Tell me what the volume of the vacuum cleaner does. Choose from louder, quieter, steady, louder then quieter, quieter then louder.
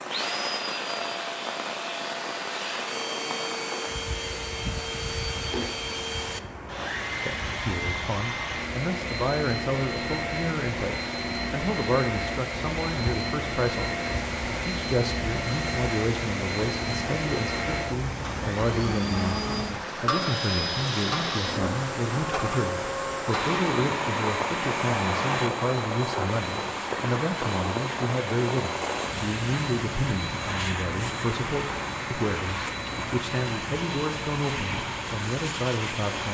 steady.